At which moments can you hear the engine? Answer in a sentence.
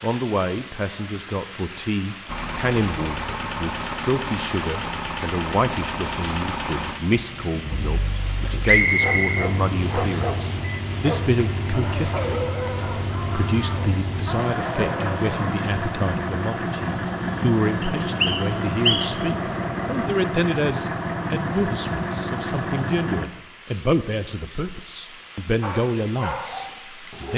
The engine can be heard from 2.2 to 23.2 s.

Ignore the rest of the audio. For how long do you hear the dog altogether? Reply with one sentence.
You can hear the dog for 9 seconds altogether.